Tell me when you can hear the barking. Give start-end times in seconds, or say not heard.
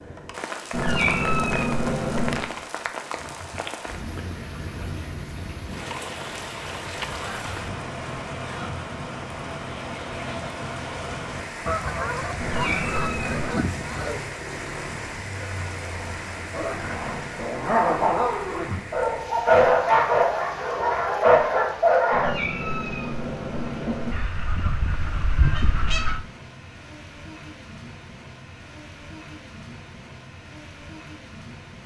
16.5-22.3.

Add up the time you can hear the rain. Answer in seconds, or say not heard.
32 s.